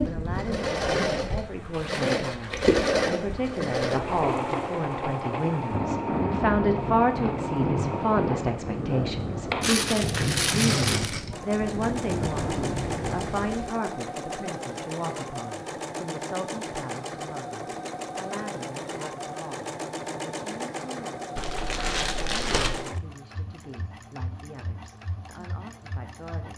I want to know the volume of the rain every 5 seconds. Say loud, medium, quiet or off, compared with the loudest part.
medium, loud, loud, off, off, off.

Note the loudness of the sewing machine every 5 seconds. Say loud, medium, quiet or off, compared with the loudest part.
loud, medium, medium, medium, medium, quiet.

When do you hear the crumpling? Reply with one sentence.
You can hear the crumpling from 1.7 to 2.9 s, from 9.6 to 11.2 s and from 21.4 to 22.9 s.